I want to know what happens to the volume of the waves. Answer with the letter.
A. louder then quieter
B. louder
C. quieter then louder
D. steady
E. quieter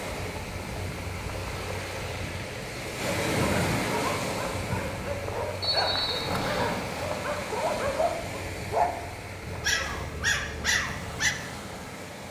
A.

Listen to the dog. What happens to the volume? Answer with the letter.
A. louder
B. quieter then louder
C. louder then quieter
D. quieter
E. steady
A.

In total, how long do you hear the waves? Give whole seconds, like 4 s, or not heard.
12 s.